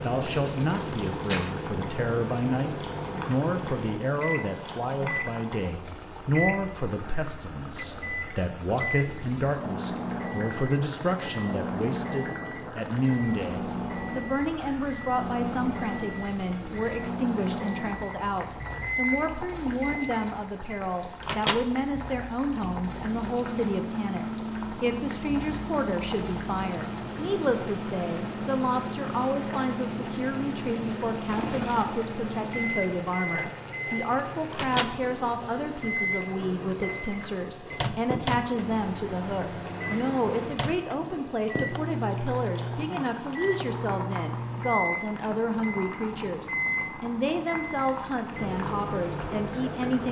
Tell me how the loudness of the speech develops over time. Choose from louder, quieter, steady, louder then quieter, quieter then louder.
steady.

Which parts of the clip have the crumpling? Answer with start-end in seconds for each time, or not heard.
0.2-1.5, 31.3-31.9.